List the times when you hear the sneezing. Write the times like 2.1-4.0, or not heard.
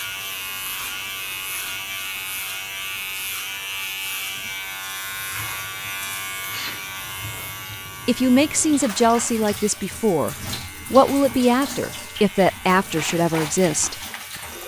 6.5-7.0.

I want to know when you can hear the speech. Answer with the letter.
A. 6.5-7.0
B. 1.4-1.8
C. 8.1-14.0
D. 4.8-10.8
C.